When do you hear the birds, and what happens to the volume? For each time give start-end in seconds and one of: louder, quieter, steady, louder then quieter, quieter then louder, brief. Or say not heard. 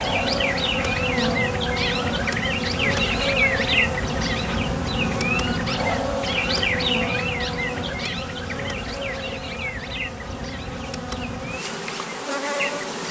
0.0-13.0 quieter.